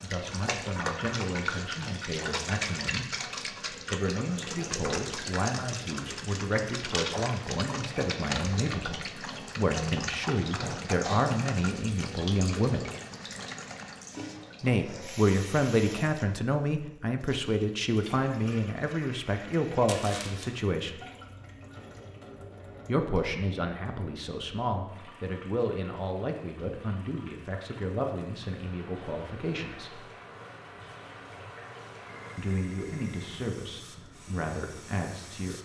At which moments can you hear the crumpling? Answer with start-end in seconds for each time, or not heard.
19.9-20.5.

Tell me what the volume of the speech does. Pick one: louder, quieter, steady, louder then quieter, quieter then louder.
louder then quieter.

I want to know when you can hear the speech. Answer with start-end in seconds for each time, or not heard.
0.0-12.8, 14.6-21.0, 22.9-30.1, 32.4-35.6.